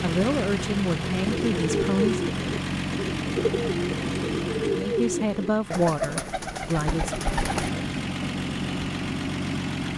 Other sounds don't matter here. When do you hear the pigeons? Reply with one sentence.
The pigeons can be heard from 1.2 to 7.8 s.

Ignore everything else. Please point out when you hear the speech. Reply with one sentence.
The speech can be heard from 0.0 to 2.2 s and from 4.8 to 7.2 s.